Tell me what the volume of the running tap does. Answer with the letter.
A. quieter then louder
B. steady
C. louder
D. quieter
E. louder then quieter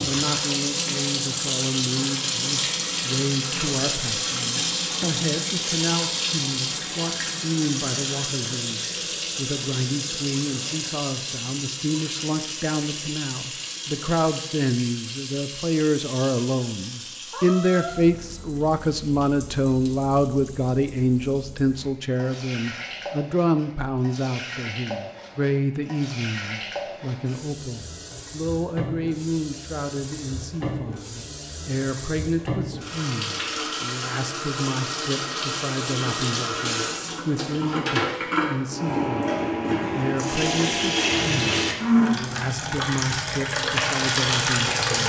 A.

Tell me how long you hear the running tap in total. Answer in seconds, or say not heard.
45 s.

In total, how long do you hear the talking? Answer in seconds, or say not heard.
45 s.